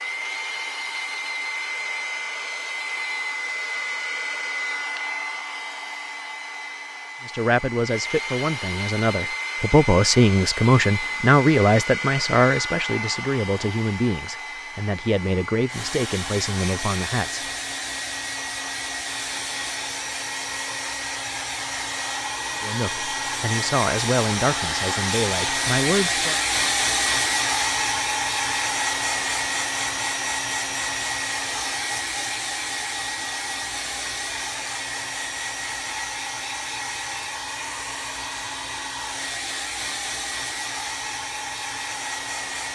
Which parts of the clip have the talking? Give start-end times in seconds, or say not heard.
7.2-17.4, 22.6-26.4.